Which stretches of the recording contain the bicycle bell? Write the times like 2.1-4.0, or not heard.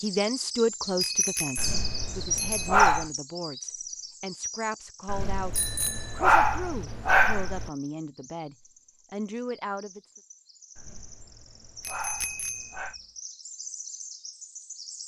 1.0-2.8, 5.5-6.2, 11.8-12.8.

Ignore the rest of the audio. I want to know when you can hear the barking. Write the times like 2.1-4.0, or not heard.
1.6-3.0, 5.0-7.7, 10.8-12.9.